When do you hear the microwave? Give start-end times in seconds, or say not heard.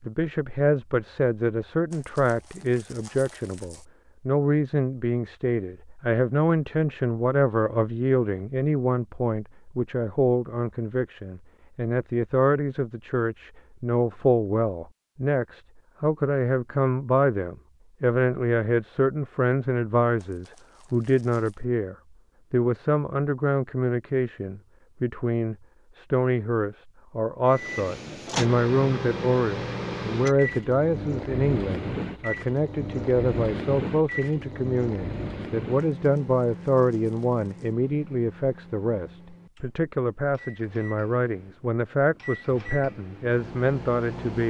27.4-44.4.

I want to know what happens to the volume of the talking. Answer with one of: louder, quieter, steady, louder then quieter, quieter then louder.
steady.